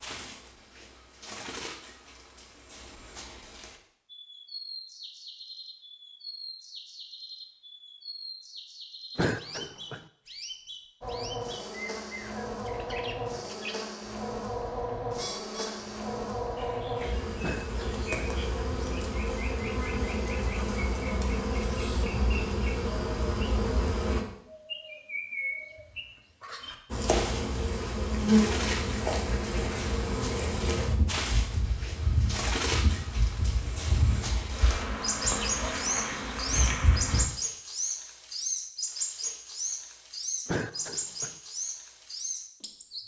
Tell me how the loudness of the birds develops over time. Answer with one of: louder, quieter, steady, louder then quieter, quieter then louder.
louder.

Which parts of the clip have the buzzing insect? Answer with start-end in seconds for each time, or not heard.
11.0-24.2, 26.9-37.2.